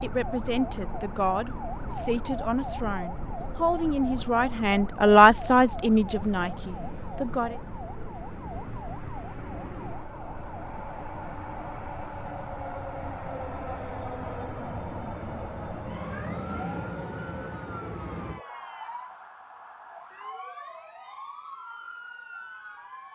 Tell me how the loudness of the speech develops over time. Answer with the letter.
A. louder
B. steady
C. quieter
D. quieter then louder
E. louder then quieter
E.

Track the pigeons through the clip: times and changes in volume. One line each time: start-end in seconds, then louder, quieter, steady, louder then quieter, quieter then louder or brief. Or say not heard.
not heard.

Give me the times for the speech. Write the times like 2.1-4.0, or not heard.
0.0-7.6.